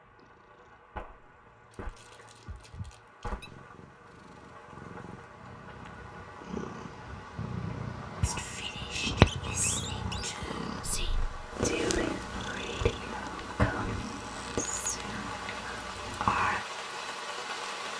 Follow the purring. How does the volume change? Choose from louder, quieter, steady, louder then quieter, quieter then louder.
louder then quieter.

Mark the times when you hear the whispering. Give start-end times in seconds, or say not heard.
8.2-16.6.